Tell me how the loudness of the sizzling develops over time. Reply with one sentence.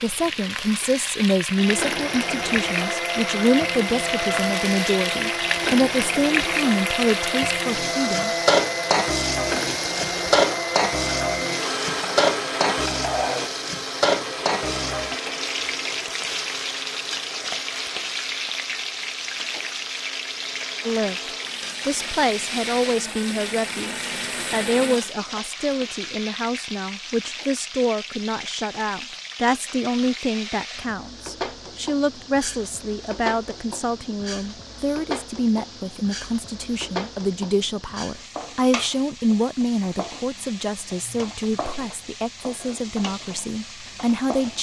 The volume of the sizzling goes down.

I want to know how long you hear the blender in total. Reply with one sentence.
You can hear the blender for 24 seconds altogether.